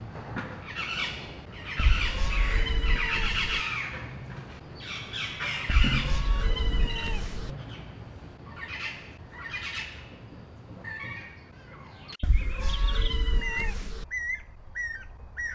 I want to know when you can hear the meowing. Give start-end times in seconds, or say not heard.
1.8-3.6, 5.7-7.5, 12.2-14.1.